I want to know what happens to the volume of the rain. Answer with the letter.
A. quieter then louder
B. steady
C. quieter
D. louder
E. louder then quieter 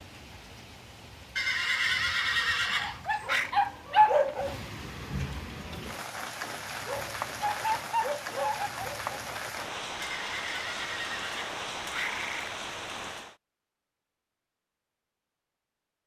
D.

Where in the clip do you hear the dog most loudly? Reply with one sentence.
The volume of the dog peaks at 4 seconds.